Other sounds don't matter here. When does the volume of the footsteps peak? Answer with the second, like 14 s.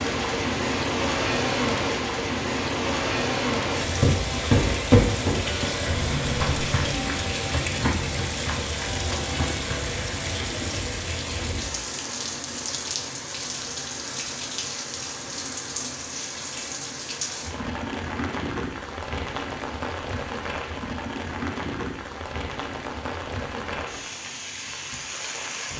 5 s.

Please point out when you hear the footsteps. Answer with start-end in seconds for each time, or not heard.
3.8-10.8.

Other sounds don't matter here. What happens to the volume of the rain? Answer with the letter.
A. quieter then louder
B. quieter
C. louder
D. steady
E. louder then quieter
B.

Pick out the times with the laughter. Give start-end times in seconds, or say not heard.
10.3-10.8.